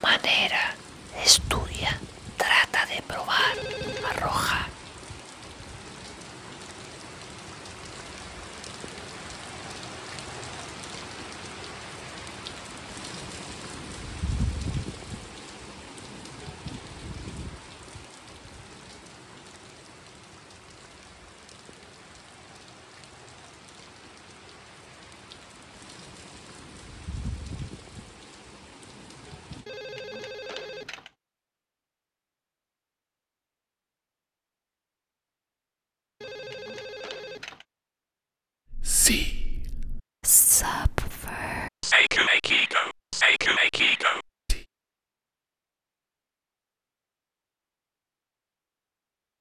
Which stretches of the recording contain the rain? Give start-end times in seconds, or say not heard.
0.0-29.6.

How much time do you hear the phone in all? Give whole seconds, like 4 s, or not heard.
4 s.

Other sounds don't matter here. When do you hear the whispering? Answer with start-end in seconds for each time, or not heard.
0.0-4.7, 38.7-44.6.